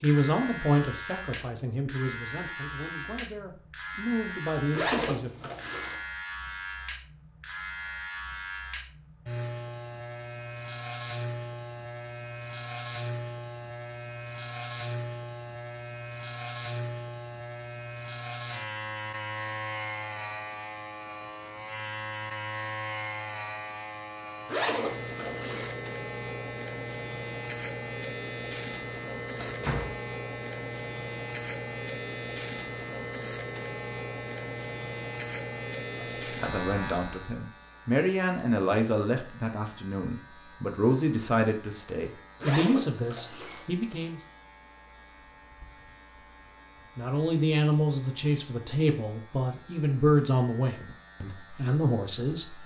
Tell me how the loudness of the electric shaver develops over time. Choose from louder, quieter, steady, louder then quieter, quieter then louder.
quieter.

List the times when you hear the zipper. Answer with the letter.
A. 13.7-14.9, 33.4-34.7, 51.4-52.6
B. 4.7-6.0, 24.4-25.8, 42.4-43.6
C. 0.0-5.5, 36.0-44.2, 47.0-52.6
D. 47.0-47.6
B.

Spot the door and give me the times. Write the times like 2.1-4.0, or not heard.
29.4-29.9.